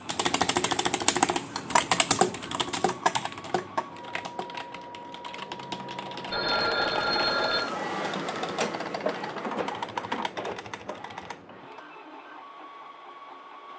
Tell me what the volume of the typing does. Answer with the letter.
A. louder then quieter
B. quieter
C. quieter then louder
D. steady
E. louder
B.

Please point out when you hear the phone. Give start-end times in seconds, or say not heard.
6.3-7.7.